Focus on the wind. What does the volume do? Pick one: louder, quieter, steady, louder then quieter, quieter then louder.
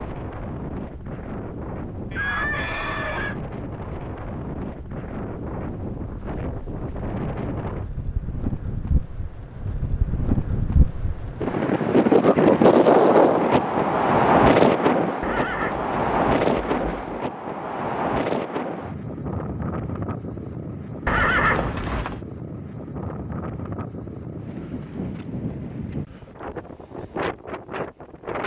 louder then quieter.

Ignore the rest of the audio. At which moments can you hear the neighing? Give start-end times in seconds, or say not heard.
2.1-3.4, 15.2-17.2, 21.1-22.2.